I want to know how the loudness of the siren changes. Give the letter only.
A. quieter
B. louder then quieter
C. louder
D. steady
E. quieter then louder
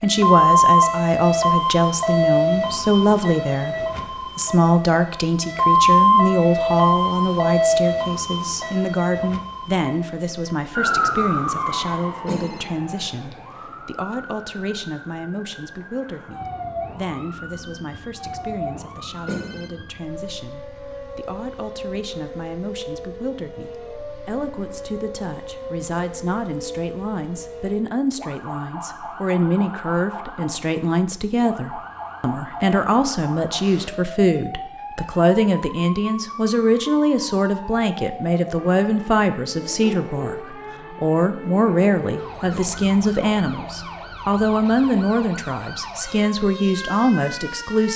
A.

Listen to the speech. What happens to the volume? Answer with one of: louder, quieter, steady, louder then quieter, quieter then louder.
quieter then louder.